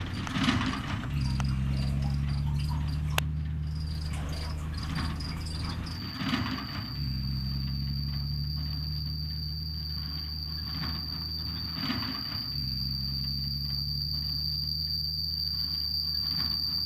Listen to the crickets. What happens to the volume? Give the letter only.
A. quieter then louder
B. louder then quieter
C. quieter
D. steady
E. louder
E.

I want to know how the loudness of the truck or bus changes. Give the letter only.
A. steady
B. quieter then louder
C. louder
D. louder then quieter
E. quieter
E.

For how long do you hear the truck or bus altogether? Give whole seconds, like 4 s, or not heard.
17 s.